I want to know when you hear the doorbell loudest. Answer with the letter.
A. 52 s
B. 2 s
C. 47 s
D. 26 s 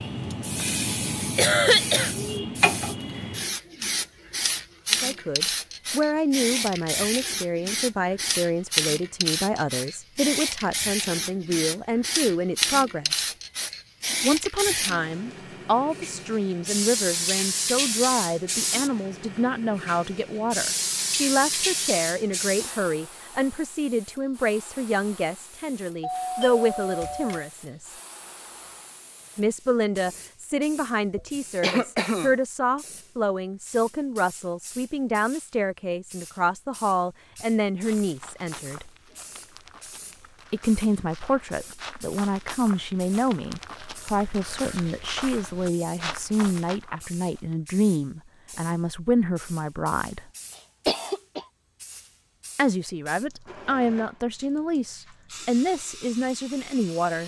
D.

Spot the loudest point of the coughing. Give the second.
2 s.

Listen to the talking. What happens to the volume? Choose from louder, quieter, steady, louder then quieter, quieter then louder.
steady.